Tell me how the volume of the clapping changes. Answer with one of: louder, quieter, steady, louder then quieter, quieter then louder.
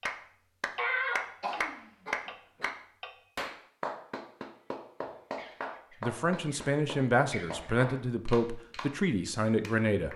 quieter.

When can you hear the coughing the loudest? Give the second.
1 s.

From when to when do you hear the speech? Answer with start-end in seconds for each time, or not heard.
6.0-10.1.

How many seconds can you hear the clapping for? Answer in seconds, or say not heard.
10 s.